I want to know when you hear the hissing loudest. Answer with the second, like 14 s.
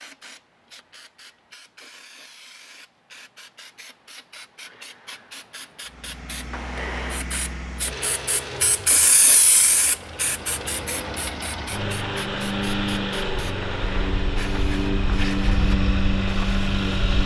9 s.